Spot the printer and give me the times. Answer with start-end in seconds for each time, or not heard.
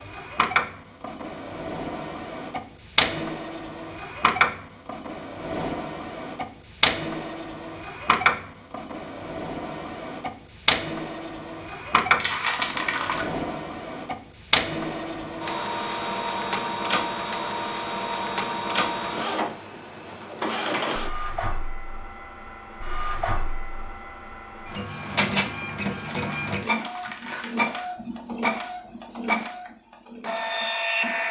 0.0-31.2.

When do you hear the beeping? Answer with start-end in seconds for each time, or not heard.
not heard.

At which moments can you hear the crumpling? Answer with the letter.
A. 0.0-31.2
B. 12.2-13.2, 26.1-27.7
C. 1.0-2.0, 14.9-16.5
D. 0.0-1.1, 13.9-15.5
B.